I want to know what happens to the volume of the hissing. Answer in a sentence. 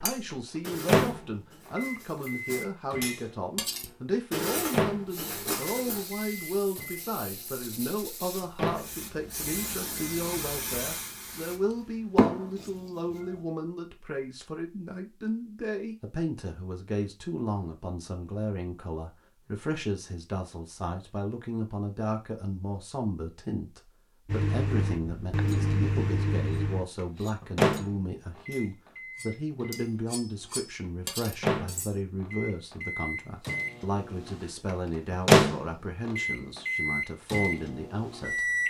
The volume of the hissing goes up.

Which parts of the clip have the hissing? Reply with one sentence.
You can hear the hissing from 5.1 to 13.4 s.